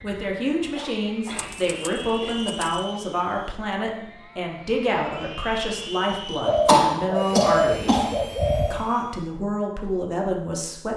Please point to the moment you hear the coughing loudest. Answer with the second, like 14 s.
7 s.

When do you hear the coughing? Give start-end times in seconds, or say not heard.
0.8-2.4, 6.7-8.2.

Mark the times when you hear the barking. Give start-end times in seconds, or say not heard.
not heard.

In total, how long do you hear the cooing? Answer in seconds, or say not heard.
4 s.